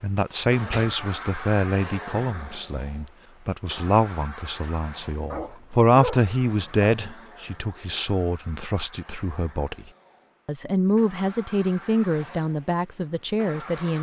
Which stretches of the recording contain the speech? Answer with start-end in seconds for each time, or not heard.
0.0-9.8, 10.4-13.9.